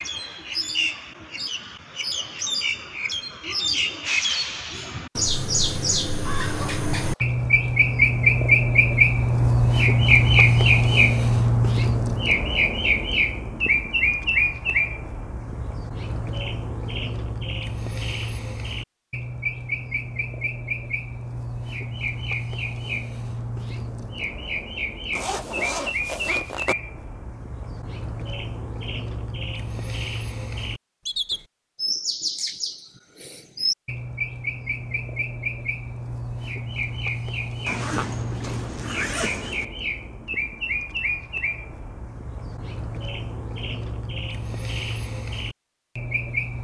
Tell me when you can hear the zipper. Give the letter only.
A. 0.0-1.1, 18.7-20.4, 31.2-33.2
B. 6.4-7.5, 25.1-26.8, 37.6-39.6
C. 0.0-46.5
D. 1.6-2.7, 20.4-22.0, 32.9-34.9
B.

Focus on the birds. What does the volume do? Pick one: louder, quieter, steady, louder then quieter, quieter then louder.
quieter.